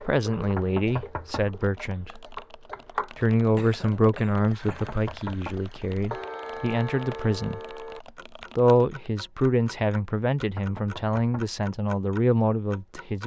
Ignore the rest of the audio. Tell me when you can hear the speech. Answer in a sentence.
The speech can be heard from 0.0 to 2.4 s, from 3.1 to 7.8 s and from 8.6 to 13.2 s.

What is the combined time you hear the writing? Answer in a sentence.
The writing can't be heard in this clip.